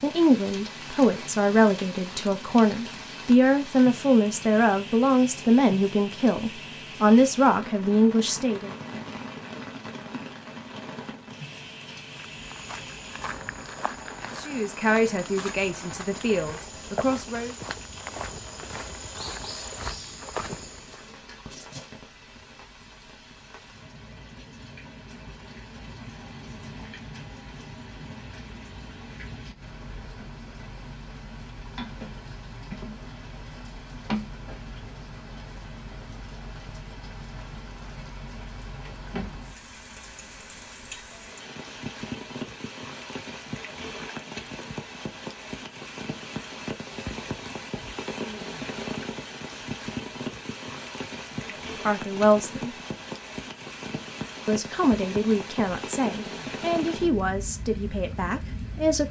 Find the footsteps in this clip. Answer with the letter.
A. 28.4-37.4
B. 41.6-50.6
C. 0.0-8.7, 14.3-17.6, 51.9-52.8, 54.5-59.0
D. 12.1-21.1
D.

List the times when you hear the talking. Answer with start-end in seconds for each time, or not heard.
0.0-8.7, 14.3-17.6, 51.9-52.8, 54.5-59.0.